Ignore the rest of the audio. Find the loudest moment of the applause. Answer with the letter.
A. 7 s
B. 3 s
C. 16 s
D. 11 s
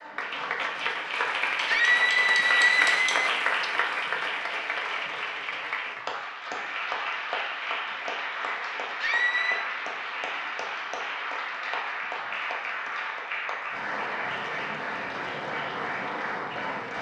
B.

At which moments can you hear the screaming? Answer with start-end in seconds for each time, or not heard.
1.6-3.1, 9.0-9.7.